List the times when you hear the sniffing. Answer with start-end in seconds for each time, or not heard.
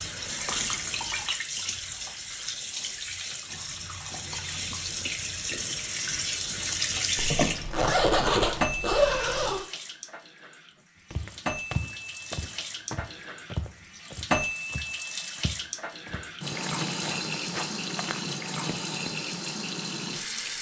not heard.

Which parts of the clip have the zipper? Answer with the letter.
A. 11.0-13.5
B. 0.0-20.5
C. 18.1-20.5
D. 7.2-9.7
D.